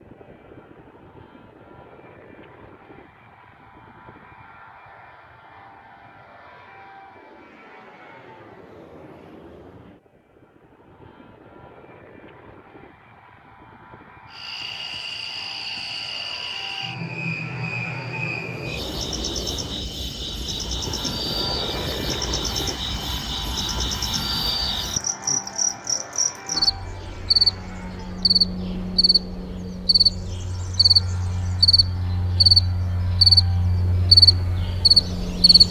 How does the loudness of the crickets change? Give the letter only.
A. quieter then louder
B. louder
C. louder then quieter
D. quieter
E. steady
B.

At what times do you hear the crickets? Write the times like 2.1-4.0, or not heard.
14.3-35.6.